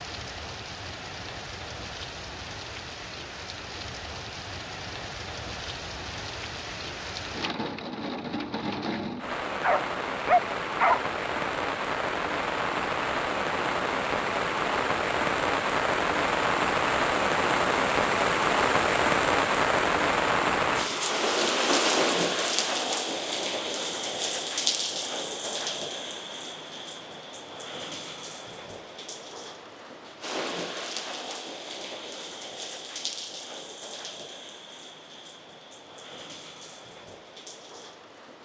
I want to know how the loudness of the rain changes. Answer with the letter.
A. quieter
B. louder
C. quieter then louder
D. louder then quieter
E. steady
D.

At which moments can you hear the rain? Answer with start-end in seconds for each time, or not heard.
0.0-38.4.